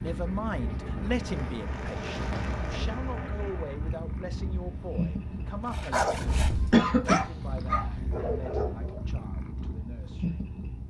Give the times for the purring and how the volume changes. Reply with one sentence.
You can hear the purring from 0.0 to 10.8 s, at a steady volume.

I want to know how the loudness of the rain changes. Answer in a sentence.
The loudness of the rain goes up, then down.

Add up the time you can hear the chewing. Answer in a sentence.
You can't hear the chewing here.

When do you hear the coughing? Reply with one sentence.
You can hear the coughing from 6.7 to 7.2 s.